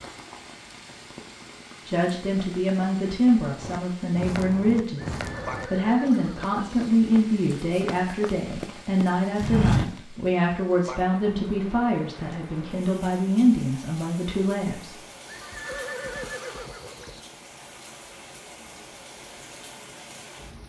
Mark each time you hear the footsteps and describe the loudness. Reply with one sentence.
You can hear the footsteps from 3.5 to 10.0 s, getting quieter then louder.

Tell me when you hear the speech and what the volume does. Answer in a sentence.
You can hear the speech from 1.9 to 14.9 s, at a steady volume.